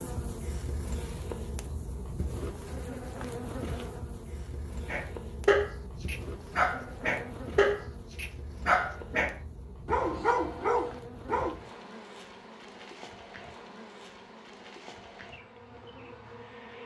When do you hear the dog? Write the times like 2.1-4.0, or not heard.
4.8-11.6.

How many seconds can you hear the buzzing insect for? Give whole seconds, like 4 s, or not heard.
17 s.